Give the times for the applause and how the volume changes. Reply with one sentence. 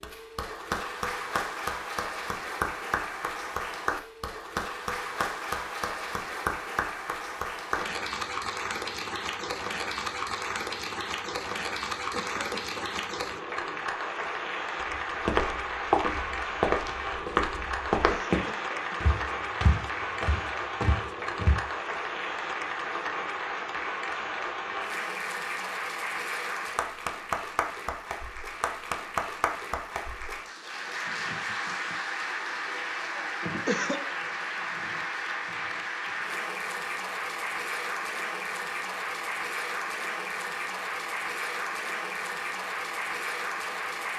You can hear the applause from 0.0 to 44.1 s, at a steady volume.